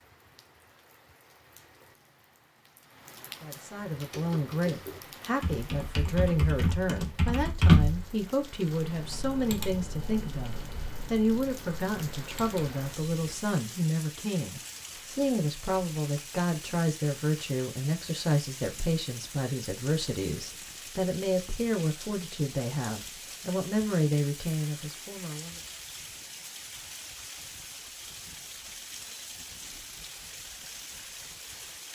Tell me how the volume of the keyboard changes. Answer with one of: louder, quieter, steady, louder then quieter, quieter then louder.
louder then quieter.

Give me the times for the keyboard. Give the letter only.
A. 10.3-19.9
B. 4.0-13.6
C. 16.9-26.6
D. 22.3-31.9
B.